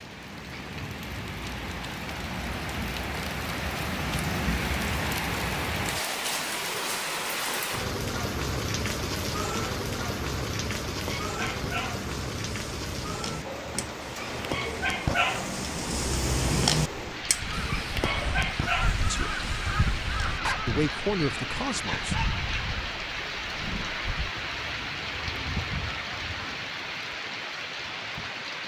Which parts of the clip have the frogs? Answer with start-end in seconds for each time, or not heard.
not heard.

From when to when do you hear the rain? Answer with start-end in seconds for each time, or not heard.
0.0-28.6.